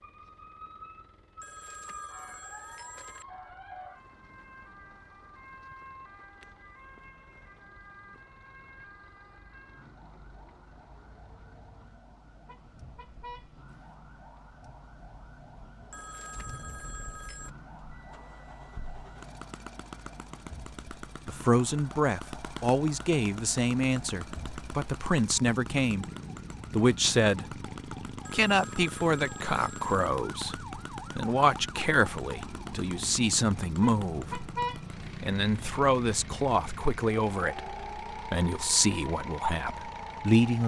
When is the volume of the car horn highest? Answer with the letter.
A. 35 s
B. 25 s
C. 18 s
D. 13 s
A.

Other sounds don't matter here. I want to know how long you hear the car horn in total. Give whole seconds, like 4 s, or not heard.
3 s.